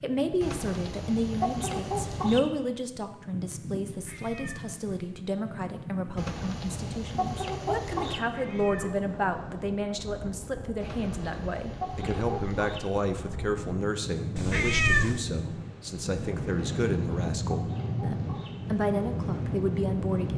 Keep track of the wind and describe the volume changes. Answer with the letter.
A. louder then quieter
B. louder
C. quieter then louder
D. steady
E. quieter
B.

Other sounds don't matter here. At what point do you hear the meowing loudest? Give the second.
15 s.